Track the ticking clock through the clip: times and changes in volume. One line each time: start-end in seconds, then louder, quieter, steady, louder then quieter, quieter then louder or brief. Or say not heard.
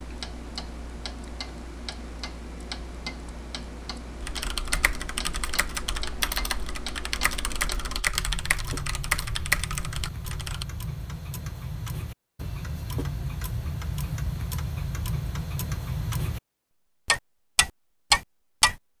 0.0-16.4 louder
17.1-18.8 brief.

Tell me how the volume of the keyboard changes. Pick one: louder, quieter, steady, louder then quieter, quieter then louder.
louder.